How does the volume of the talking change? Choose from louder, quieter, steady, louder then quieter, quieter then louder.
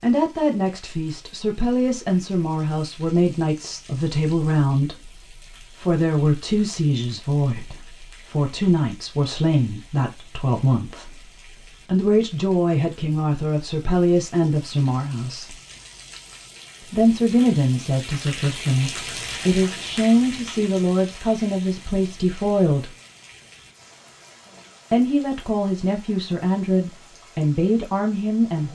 steady.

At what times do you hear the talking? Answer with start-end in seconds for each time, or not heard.
0.0-15.6, 16.9-22.9, 24.9-28.7.